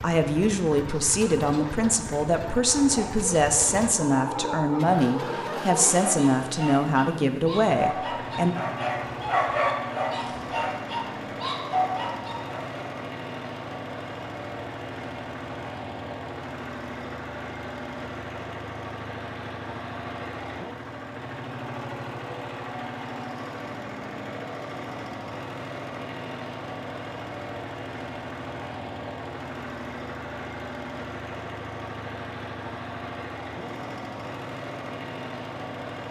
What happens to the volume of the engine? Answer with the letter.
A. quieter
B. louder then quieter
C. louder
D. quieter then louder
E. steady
E.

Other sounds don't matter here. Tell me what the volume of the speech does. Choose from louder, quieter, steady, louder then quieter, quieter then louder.
steady.